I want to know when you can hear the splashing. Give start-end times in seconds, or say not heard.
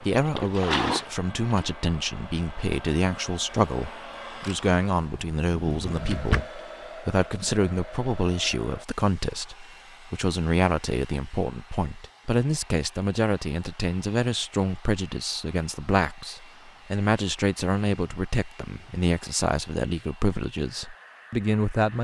0.0-1.8.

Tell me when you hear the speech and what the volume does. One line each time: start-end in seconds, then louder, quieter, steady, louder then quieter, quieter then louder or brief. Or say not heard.
0.0-21.9 steady.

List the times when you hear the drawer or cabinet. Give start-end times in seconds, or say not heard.
5.5-6.5.